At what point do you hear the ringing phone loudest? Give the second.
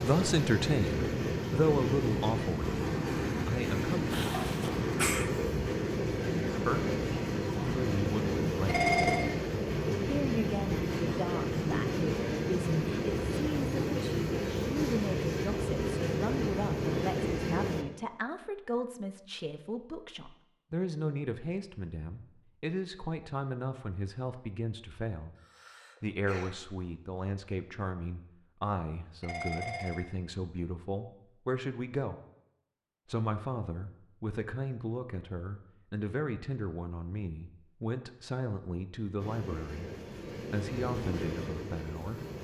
9 s.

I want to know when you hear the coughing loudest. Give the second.
5 s.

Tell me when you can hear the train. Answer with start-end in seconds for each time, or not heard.
0.0-17.9, 39.1-42.3.